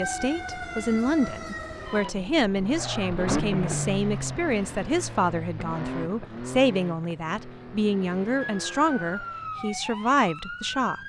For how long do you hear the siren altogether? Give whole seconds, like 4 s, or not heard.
5 s.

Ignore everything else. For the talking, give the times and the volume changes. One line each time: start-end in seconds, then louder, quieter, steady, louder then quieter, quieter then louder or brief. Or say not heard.
0.0-11.0 steady.